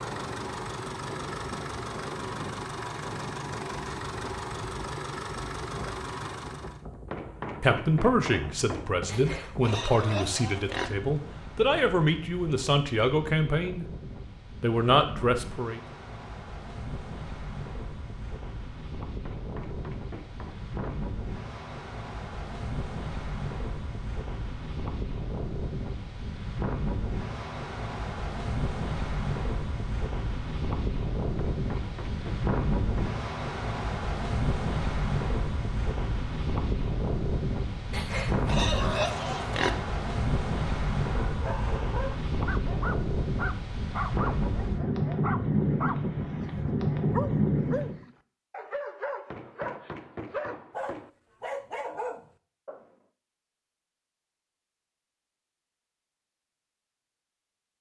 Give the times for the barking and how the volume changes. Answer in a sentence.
The barking can be heard from 41.2 to 52.9 s, at a steady volume.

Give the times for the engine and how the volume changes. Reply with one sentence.
You can hear the engine from 0.0 to 6.8 s, at a steady volume.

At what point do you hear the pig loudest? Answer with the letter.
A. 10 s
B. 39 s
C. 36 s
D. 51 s
B.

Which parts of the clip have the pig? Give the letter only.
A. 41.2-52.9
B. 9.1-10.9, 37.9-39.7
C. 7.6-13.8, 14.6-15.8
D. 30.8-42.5
B.